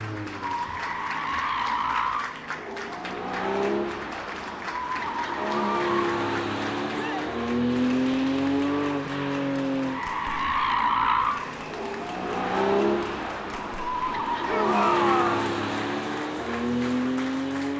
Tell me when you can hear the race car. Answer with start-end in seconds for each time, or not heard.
0.0-17.7.